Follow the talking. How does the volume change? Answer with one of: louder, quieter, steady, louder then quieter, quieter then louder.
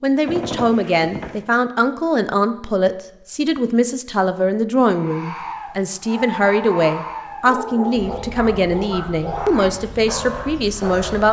steady.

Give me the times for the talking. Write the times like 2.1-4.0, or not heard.
0.0-11.2.